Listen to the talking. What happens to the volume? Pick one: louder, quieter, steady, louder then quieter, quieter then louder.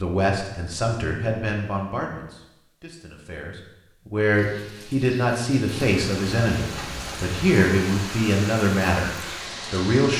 quieter then louder.